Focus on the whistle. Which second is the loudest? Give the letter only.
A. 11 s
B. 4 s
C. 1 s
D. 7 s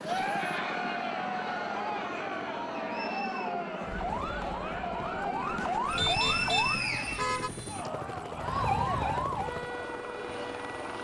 D.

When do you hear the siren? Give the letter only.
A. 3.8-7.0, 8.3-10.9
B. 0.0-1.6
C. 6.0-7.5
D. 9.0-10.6
A.